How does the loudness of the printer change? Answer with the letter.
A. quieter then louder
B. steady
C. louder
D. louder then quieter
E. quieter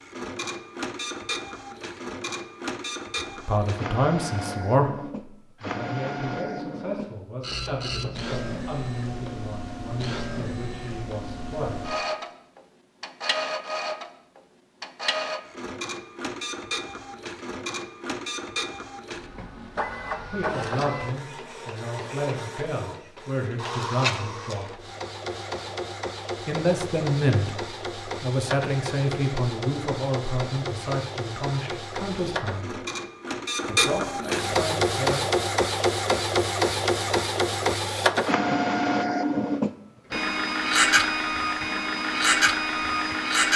C.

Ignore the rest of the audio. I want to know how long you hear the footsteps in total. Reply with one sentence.
The footsteps can't be heard in this clip.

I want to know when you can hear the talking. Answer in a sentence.
The talking can be heard from 3.1 to 11.8 s, from 20.3 to 24.8 s, from 26.4 to 32.8 s and from 33.6 to 35.3 s.